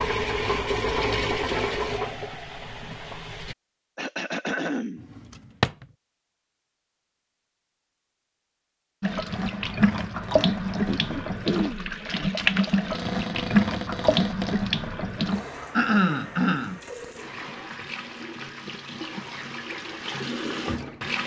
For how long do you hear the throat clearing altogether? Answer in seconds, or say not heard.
3 s.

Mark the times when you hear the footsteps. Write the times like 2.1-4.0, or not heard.
not heard.